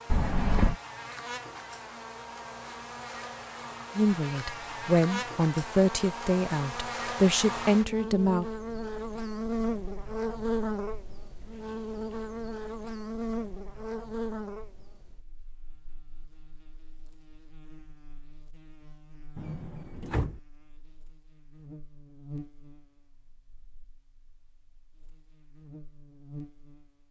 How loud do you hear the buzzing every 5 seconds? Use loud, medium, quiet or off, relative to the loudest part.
medium, loud, loud, quiet, quiet, quiet.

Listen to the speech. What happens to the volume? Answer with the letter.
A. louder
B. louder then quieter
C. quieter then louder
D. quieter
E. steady
E.